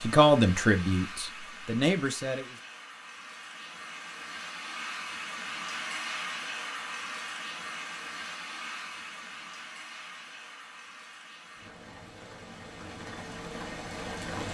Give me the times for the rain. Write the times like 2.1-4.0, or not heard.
0.0-14.5.